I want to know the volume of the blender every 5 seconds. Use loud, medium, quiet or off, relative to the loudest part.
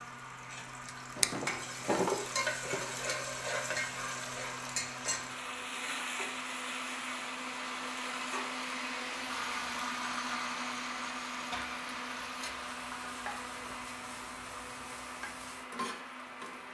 medium, loud, loud, medium.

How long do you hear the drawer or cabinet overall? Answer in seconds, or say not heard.
2 s.